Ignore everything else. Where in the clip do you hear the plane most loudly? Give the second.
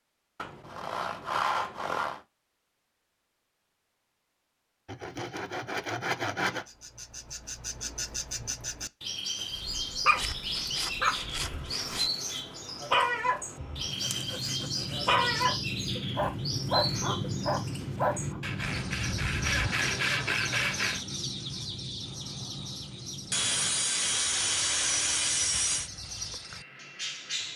17 s.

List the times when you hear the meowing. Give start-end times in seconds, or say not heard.
not heard.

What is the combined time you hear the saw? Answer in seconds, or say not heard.
12 s.